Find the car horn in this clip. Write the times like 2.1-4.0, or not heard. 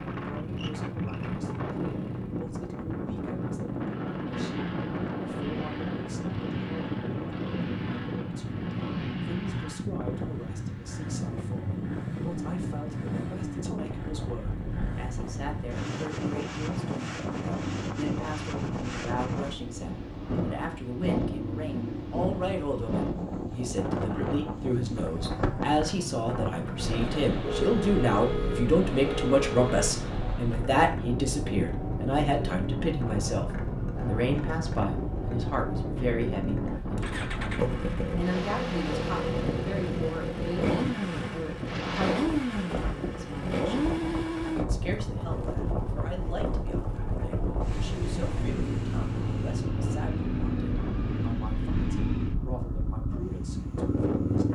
27.4-29.9.